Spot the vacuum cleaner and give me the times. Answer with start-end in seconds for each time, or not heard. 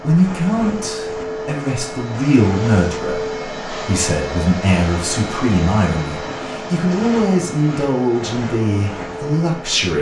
0.0-9.9.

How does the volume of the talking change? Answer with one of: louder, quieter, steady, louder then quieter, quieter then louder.
steady.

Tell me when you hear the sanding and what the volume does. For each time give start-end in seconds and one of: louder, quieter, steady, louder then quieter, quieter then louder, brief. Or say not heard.
not heard.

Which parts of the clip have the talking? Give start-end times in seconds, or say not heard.
0.0-9.9.